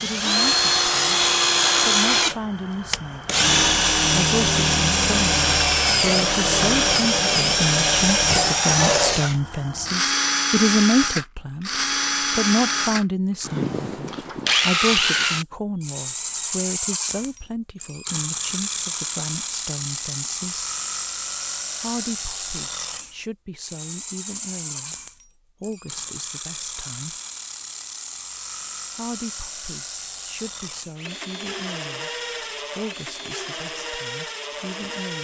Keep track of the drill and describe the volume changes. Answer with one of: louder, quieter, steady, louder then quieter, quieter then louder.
quieter.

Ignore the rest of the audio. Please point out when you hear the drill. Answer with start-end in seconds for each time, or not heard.
0.0-35.1.